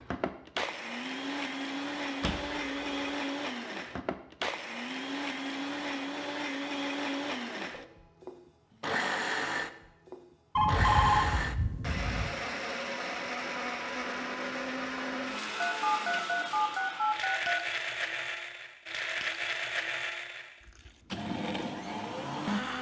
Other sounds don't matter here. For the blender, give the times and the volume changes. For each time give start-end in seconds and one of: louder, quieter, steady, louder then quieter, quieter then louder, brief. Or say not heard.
0.0-22.7 steady.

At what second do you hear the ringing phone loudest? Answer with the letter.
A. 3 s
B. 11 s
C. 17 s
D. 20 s
B.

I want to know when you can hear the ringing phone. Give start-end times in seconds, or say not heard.
2.2-3.1, 10.6-12.3, 15.6-17.6.